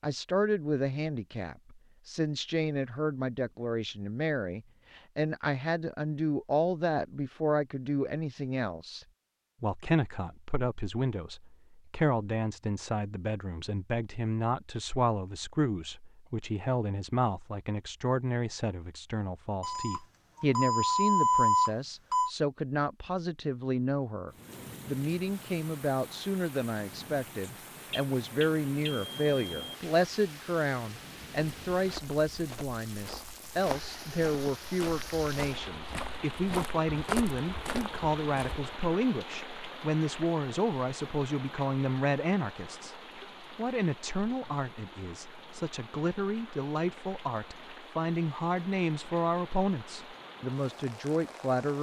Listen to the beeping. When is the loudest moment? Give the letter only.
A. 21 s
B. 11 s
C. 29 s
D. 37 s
A.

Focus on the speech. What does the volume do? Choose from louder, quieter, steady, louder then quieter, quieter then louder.
steady.